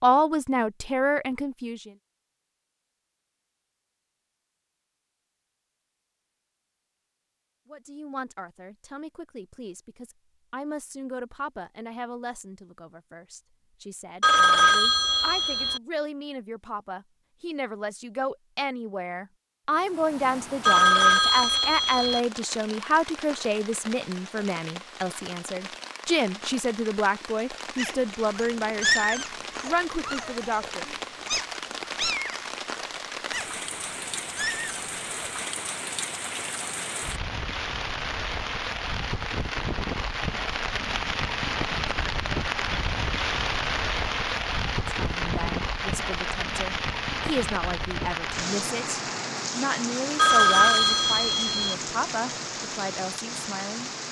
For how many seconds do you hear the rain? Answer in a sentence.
The rain can be heard for 34 seconds in total.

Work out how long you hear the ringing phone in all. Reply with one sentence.
You can hear the ringing phone for 5 seconds altogether.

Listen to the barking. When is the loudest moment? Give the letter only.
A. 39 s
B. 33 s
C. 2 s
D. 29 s
D.